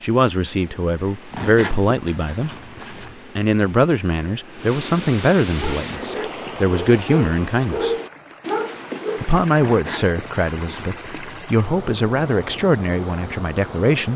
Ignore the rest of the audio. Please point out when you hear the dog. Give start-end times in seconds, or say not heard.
5.5-9.4.